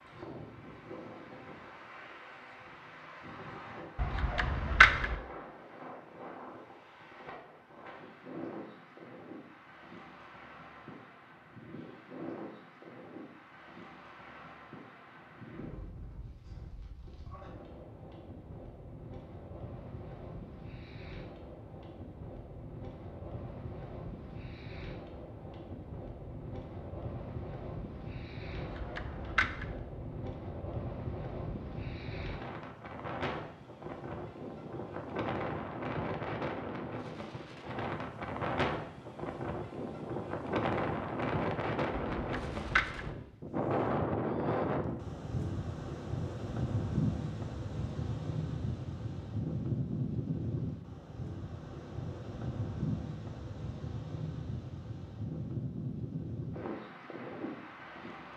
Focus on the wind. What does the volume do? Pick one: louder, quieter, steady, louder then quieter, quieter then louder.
louder.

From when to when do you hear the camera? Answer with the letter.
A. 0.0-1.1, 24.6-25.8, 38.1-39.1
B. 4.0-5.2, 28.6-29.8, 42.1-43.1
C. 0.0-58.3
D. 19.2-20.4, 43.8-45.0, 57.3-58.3
B.